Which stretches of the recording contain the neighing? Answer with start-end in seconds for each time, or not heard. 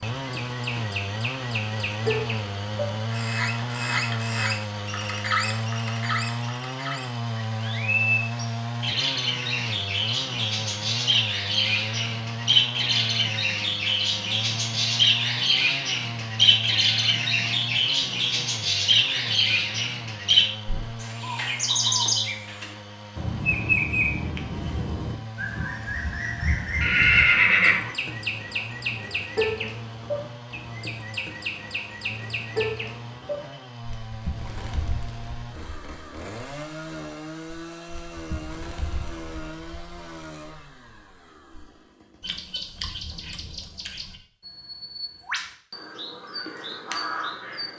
26.8-27.9.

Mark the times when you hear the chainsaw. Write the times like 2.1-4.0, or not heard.
0.0-42.5.